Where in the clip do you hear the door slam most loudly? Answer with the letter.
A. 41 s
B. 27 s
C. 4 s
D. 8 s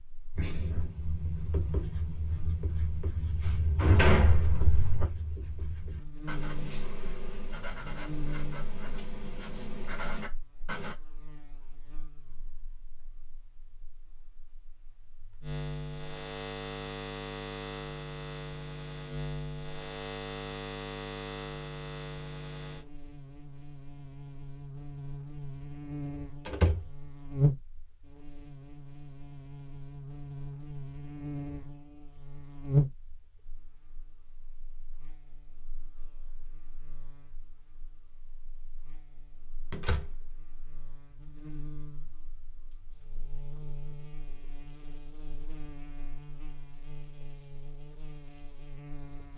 C.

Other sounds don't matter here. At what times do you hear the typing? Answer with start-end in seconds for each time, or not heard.
not heard.